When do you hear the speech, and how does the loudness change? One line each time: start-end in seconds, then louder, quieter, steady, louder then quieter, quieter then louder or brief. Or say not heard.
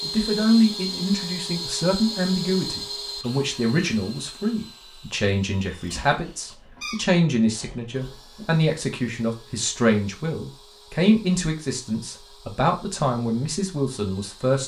0.0-14.6 steady.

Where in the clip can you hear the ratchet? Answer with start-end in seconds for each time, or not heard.
not heard.